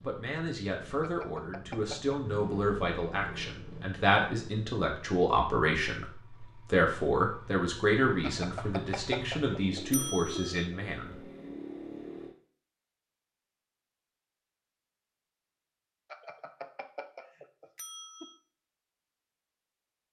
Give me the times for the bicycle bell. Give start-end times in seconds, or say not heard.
1.0-2.2, 8.2-10.7, 16.1-18.4.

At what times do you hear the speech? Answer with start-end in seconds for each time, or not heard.
0.0-11.2.